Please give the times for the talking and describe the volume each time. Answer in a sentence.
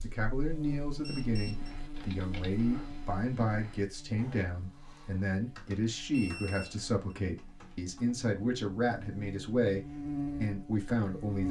The talking can be heard from 0.0 to 11.4 s, at a steady volume.